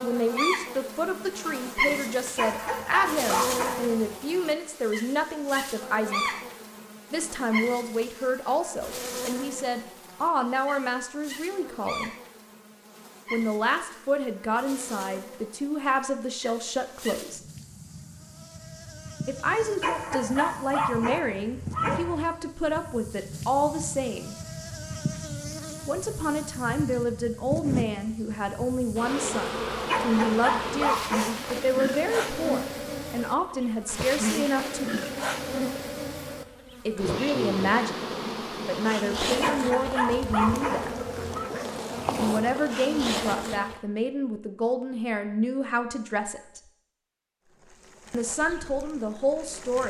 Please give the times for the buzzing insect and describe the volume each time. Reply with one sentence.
You can hear the buzzing insect from 0.0 to 43.8 s, getting quieter then louder; and briefly from 47.5 to 49.8 s.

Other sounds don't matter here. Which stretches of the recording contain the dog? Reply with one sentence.
The dog can be heard from 2.4 to 4.0 s, from 19.8 to 22.3 s, from 29.9 to 31.6 s and from 39.4 to 41.5 s.